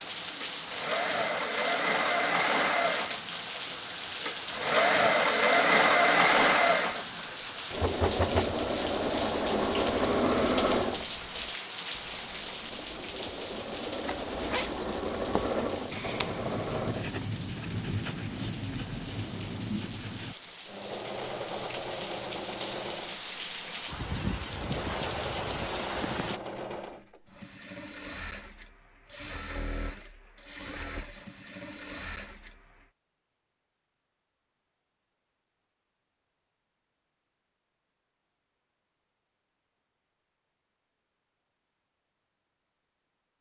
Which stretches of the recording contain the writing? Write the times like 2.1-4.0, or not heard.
14.4-20.4.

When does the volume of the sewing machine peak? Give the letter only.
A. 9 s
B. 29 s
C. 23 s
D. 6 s
D.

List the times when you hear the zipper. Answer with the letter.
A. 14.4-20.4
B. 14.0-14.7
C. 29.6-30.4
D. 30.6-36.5
B.